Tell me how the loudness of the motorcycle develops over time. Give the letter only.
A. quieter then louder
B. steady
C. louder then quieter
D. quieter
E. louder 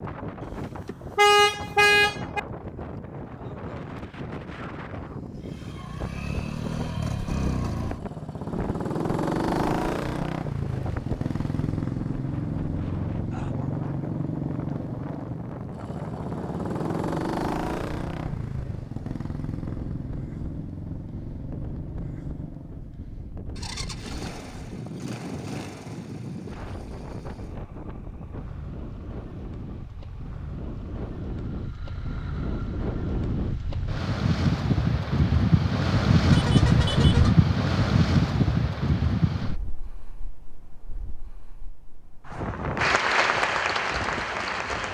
D.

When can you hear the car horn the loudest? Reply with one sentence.
The loudest moment of the car horn is at 1 second.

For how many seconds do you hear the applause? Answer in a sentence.
You can hear the applause for 2 seconds altogether.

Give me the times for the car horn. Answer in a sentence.
The car horn can be heard from 0.5 to 2.4 s and from 36.2 to 37.4 s.